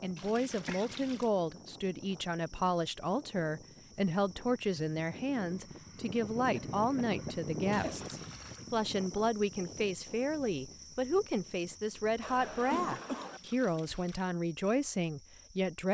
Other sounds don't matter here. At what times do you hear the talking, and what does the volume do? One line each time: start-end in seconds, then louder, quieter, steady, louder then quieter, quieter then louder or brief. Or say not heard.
0.0-15.8 steady.